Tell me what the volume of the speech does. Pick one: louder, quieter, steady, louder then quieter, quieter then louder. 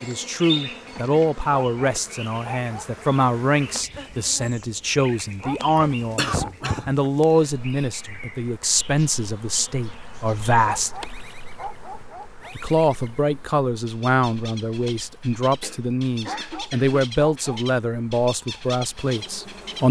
steady.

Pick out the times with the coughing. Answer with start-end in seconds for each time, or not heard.
6.2-7.8, 15.6-17.0.